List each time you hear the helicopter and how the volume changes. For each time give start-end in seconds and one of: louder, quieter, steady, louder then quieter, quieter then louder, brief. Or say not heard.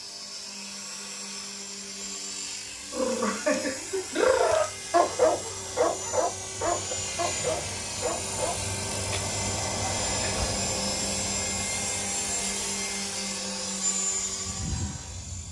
0.0-15.4 louder.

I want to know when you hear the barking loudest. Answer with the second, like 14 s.
5 s.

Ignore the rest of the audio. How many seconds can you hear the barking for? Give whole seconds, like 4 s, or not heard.
6 s.